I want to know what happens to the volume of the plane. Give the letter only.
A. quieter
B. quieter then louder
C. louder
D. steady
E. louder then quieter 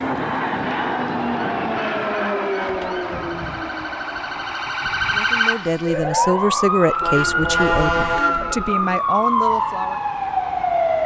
A.